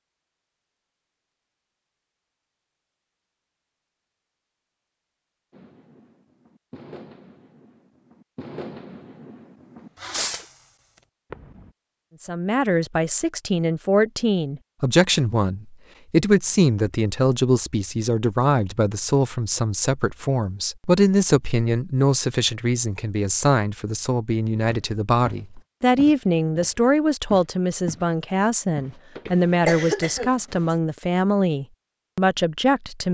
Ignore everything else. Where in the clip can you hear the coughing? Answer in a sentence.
You can hear the coughing from 9.8 to 10.4 s and from 29.2 to 30.8 s.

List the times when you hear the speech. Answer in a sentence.
The speech can be heard from 12.2 to 33.0 s.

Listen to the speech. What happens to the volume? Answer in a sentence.
The loudness of the speech stays about the same.